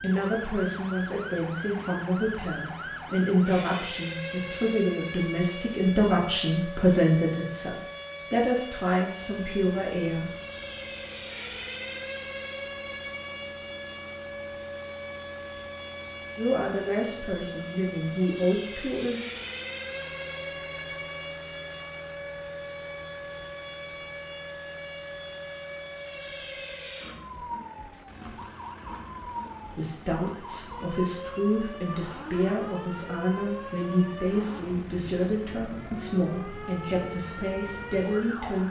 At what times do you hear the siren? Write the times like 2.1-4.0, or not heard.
0.0-38.6.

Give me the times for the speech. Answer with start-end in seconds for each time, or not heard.
0.0-10.3, 16.4-19.2, 29.6-38.6.